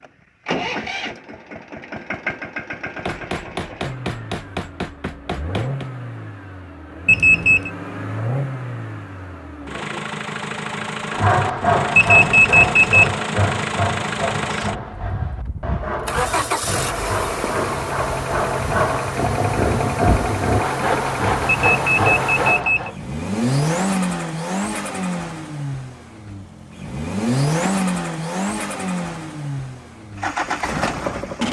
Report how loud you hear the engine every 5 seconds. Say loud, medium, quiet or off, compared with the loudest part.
medium, medium, loud, loud, loud, loud, loud.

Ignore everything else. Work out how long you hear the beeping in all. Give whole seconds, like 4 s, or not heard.
3 s.